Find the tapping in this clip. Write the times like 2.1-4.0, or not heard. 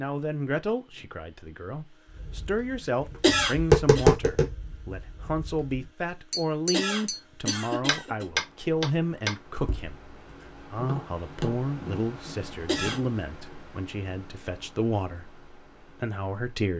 2.1-13.1.